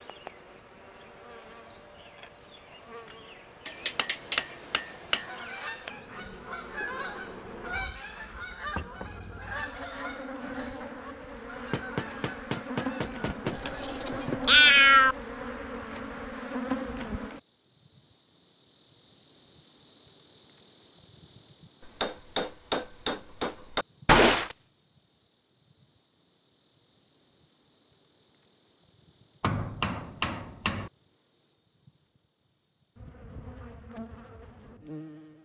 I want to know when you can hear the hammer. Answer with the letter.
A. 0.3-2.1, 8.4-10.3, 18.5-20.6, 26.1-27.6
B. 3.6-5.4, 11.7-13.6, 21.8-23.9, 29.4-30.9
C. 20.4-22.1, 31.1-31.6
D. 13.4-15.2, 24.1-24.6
B.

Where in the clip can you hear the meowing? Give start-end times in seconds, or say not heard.
13.4-15.2, 24.1-24.6.